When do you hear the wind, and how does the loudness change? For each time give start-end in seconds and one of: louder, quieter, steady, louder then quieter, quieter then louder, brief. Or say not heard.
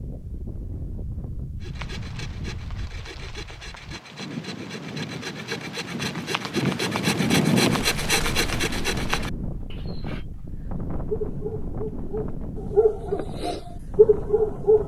0.0-14.8 louder then quieter.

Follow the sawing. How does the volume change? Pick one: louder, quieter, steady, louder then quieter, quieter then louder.
louder.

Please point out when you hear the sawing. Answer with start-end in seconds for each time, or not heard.
1.6-10.2.